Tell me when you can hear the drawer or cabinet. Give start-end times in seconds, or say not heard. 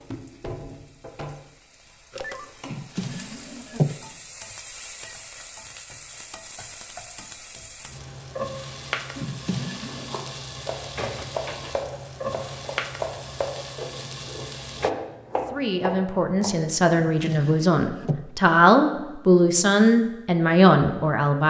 2.6-4.0, 9.2-10.2, 16.9-18.2.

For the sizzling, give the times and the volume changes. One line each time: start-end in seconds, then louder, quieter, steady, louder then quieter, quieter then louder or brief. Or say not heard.
0.0-14.9 louder.